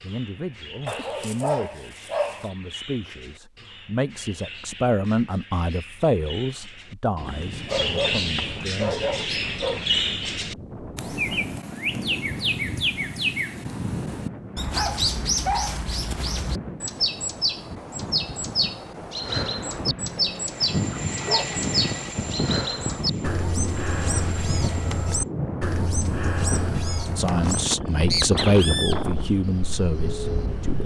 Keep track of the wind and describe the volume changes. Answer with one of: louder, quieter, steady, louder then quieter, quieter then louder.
louder.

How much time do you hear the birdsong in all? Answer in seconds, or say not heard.
31 s.